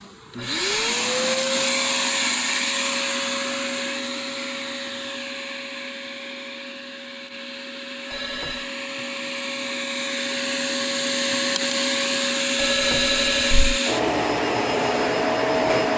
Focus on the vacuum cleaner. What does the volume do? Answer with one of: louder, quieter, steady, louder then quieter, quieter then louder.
quieter then louder.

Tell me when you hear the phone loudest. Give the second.
13 s.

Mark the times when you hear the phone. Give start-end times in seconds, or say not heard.
0.3-0.9, 8.1-8.7, 12.6-13.8.